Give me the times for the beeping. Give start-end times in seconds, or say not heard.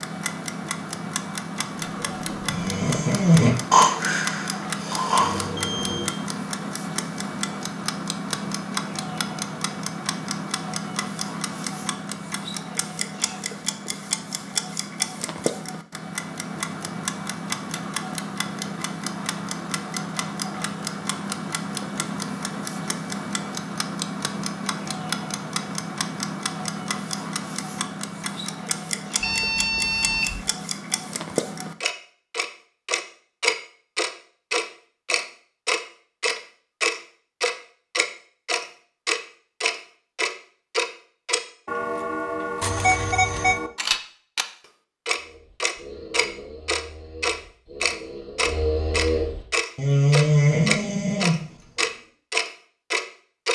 5.2-6.2, 29.2-30.4, 42.6-43.6.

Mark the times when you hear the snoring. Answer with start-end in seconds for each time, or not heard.
2.0-5.7, 45.1-51.8.